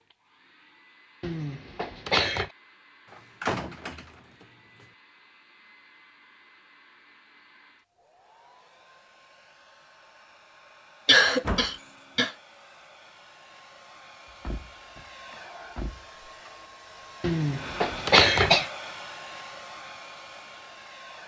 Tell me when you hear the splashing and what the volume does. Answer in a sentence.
The splashing can't be heard in this clip.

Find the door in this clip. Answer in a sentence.
You can hear the door from 3.1 to 4.1 s, from 11.2 to 11.7 s and from 14.3 to 16.1 s.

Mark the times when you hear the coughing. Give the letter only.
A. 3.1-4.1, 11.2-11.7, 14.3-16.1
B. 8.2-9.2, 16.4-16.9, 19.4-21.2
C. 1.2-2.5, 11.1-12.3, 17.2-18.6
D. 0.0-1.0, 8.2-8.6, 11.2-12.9
C.